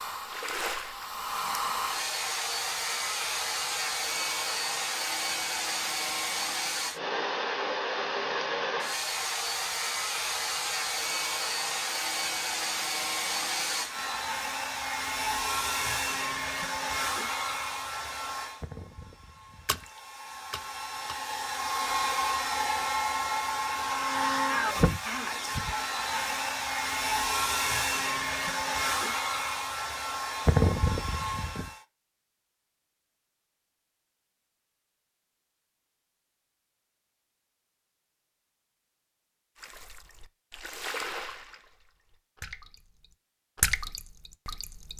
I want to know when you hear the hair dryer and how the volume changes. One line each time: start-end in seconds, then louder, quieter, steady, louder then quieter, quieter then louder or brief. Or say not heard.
0.0-31.8 steady.